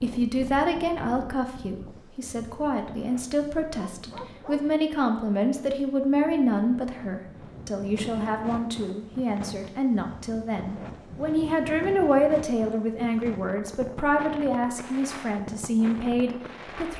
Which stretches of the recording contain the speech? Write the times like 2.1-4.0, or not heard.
0.0-16.9.